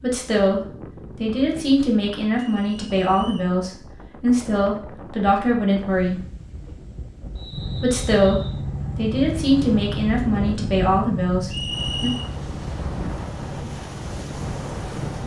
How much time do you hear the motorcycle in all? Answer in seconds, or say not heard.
8 s.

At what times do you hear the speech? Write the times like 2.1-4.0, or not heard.
0.0-6.2, 7.8-12.1.